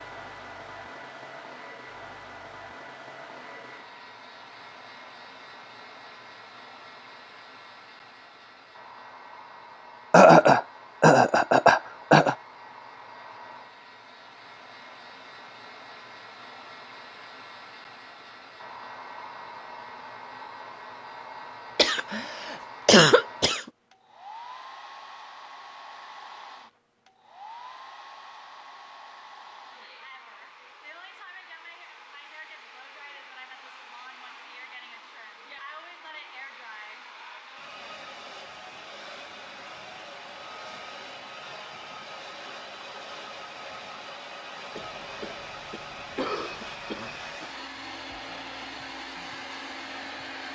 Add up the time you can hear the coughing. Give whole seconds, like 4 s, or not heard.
7 s.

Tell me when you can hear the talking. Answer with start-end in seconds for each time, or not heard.
not heard.